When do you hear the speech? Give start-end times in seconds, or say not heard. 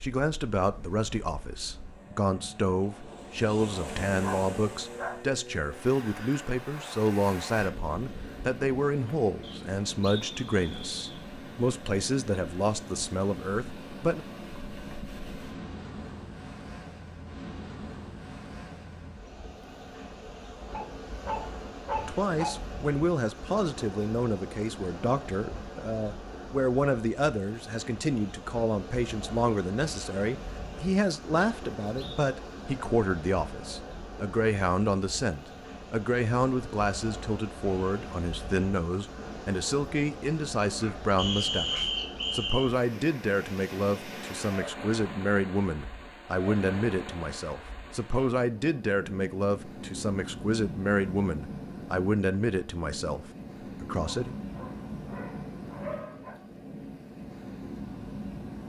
0.0-14.2, 21.9-54.4.